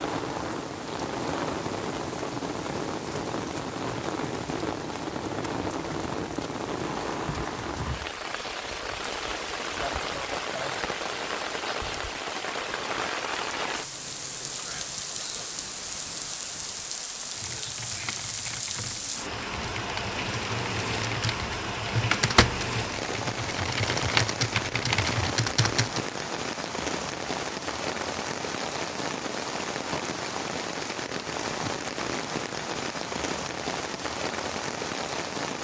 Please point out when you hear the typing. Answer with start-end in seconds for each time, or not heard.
17.2-26.0.